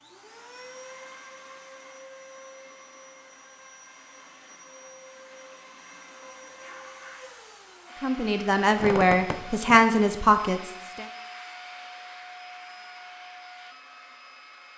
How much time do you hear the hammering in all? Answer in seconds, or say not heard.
not heard.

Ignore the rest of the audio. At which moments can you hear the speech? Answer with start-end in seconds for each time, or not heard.
8.0-11.1.